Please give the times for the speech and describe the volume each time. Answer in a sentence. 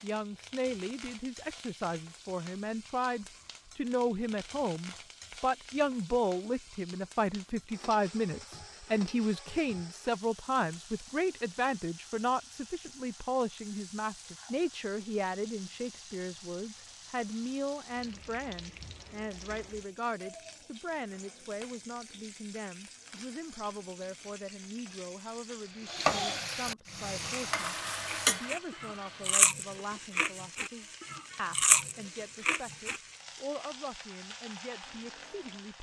You can hear the speech from 0.0 to 35.7 s, getting quieter.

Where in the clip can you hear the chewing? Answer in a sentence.
The chewing can be heard from 27.1 to 33.0 s.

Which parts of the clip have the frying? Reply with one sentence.
You can hear the frying from 0.0 to 35.7 s.